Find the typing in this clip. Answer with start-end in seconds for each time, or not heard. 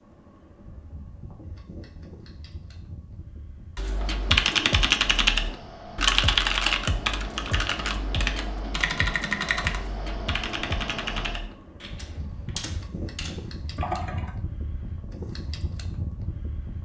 3.8-14.3.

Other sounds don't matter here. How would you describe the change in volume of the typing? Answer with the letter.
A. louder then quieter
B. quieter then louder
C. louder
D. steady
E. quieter
E.